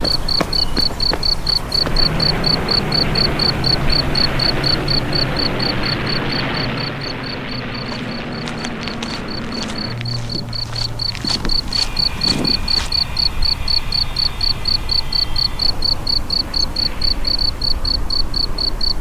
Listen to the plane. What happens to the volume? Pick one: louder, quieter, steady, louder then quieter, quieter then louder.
quieter.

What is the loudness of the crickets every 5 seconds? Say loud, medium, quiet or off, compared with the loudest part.
loud, medium, loud, loud.